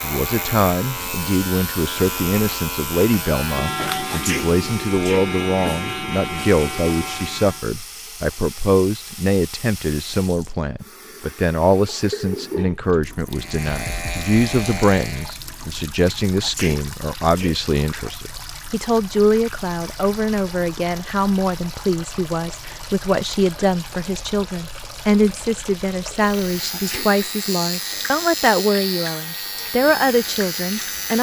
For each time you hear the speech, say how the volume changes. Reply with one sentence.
The speech can be heard from 0.0 to 31.1 s, at a steady volume.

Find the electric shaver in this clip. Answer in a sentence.
You can hear the electric shaver from 0.0 to 7.7 s, from 13.3 to 15.4 s and from 26.1 to 31.1 s.